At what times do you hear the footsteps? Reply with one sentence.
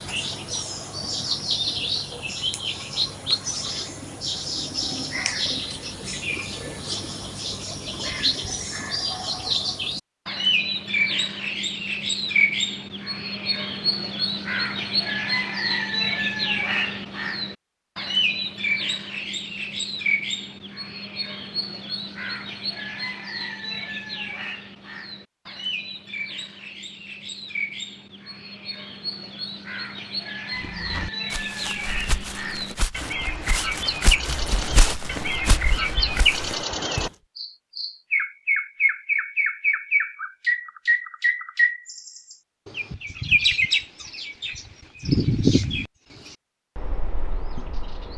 You can hear the footsteps from 30.6 to 37.1 s.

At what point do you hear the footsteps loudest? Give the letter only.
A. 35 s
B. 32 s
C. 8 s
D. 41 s
A.